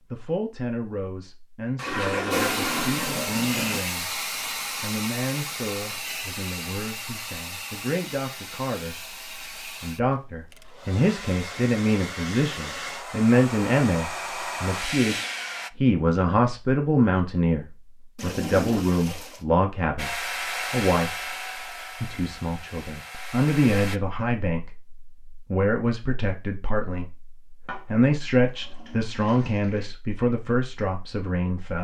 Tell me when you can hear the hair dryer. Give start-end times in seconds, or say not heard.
2.3-15.7, 19.9-24.0.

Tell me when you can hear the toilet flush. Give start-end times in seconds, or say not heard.
1.8-3.8, 18.1-19.4, 27.6-29.9.